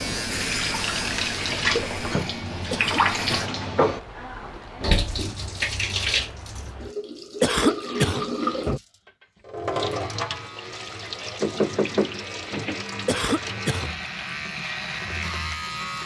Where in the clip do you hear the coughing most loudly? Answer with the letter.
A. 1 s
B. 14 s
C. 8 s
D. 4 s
C.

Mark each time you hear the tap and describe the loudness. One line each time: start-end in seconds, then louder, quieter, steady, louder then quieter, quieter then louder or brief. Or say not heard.
0.0-16.0 quieter.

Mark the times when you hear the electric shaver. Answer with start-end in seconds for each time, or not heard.
0.0-3.5, 9.8-16.0.